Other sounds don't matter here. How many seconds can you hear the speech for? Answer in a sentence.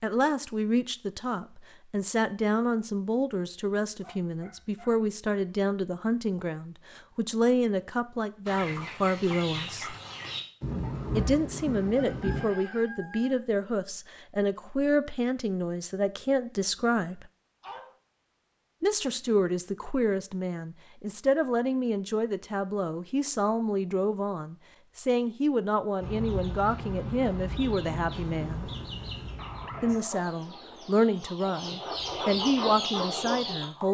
You can hear the speech for 30 seconds altogether.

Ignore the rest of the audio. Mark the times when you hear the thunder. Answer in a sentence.
You can hear the thunder from 10.6 to 12.4 s.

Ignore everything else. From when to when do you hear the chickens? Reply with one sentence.
You can hear the chickens from 8.4 to 13.3 s and from 26.0 to 33.9 s.